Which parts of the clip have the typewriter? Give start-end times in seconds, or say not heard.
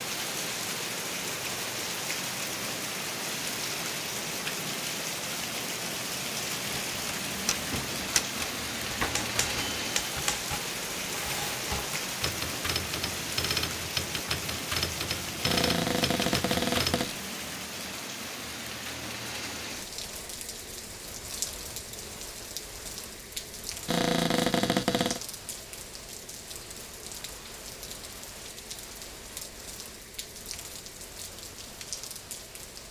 6.8-17.1.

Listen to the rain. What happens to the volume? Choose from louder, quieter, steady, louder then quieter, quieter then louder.
quieter.